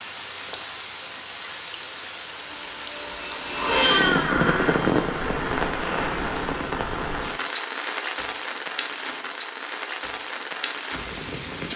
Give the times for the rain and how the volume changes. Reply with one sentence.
You can hear the rain from 0.0 to 11.7 s, getting louder then quieter.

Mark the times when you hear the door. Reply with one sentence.
The door can be heard from 3.7 to 4.8 s.